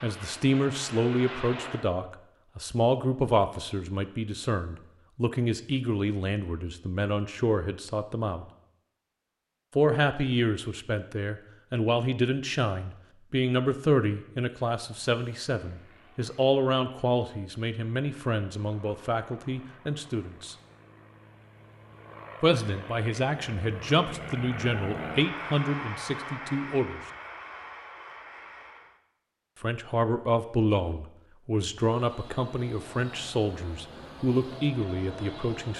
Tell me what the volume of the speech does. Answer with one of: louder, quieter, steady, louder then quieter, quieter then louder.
steady.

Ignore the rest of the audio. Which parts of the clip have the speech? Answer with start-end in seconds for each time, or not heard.
0.0-8.4, 9.8-20.6, 22.4-27.0, 29.6-35.7.